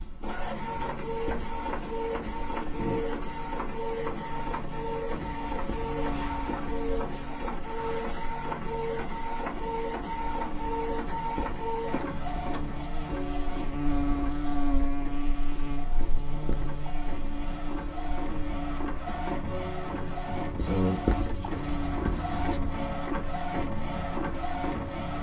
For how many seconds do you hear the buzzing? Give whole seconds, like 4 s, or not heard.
25 s.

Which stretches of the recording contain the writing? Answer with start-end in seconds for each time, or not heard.
0.8-2.6, 5.2-7.2, 10.8-12.9, 16.0-17.4, 20.6-22.6.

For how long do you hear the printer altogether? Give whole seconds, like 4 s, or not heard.
25 s.